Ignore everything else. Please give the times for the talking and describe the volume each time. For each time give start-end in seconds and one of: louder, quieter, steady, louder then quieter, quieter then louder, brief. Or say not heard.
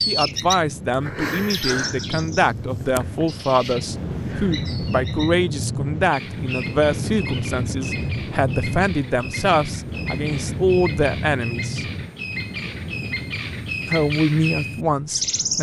0.0-11.8 steady
13.8-15.5 brief.